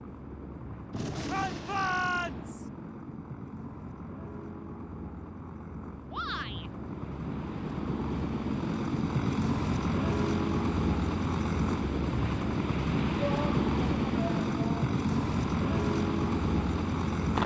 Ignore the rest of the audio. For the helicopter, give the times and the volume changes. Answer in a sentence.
You can hear the helicopter from 0.0 to 17.4 s, getting louder.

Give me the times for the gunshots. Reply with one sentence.
You can hear the gunshots from 0.9 to 2.5 s.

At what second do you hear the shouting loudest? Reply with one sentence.
The volume of the shouting peaks at 2 seconds.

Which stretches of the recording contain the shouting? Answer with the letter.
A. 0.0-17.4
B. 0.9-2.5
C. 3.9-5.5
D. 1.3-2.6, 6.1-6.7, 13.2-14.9
D.